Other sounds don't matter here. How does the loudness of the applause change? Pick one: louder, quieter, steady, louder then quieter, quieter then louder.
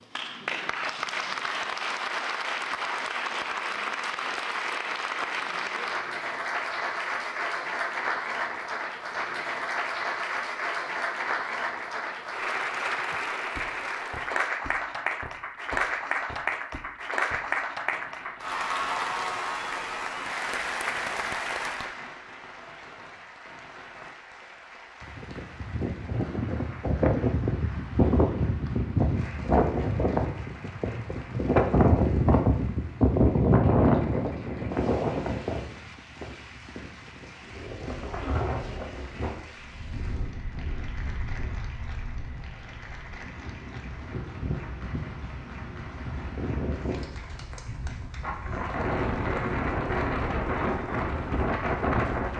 quieter.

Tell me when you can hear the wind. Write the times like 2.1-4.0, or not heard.
25.1-52.3.